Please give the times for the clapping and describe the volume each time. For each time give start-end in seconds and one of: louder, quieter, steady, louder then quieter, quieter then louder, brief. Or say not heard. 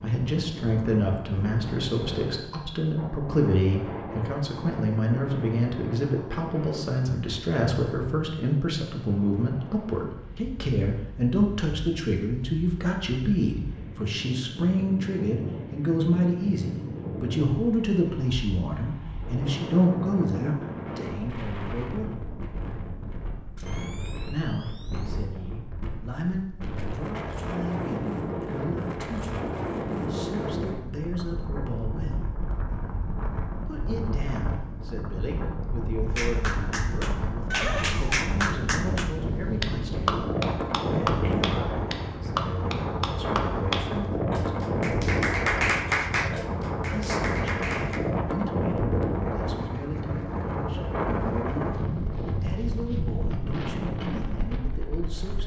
36.1-48.0 steady.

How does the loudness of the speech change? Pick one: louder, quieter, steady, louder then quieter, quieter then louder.
quieter.